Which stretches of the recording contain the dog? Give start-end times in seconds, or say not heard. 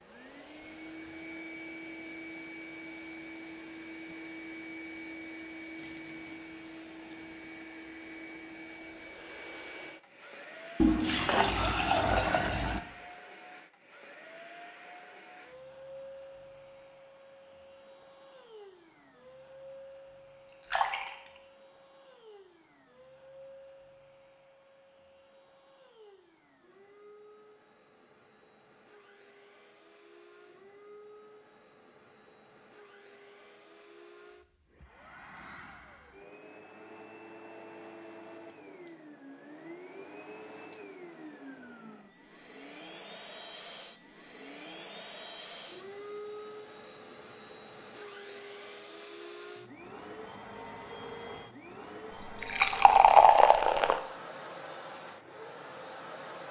not heard.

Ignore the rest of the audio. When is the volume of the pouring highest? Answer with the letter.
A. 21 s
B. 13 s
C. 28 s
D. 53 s
D.